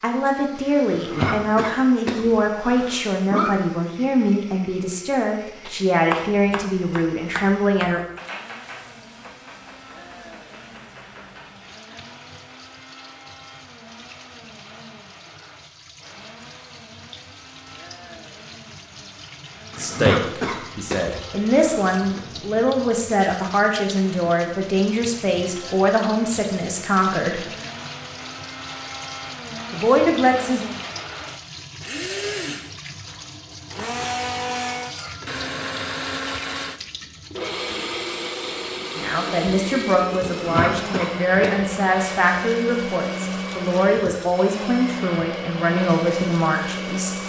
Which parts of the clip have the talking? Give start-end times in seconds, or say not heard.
0.0-8.0, 19.8-27.4, 29.7-30.6, 39.0-47.1.